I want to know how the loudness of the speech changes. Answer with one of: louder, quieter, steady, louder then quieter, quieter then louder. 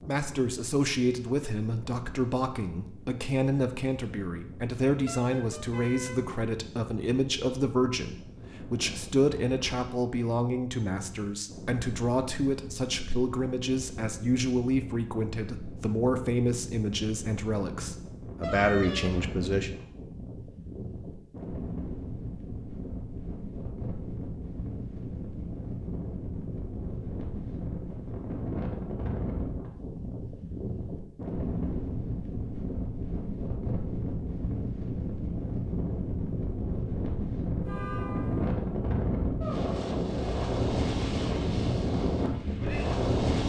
steady.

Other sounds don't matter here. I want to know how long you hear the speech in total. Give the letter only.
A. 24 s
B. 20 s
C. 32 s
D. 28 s
B.